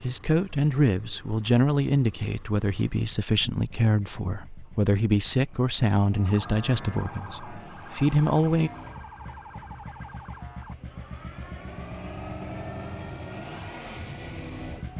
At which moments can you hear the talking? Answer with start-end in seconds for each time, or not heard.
0.0-8.7.